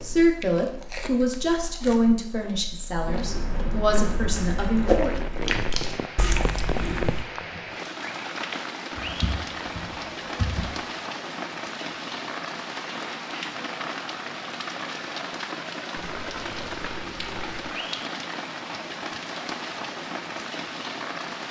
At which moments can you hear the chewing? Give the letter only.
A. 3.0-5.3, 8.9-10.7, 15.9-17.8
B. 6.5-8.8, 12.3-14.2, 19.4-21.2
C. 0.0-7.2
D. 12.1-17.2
C.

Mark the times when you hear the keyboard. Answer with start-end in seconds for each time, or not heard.
3.0-5.3, 8.9-10.7, 15.9-17.8.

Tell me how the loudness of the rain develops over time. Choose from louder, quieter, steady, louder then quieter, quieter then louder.
steady.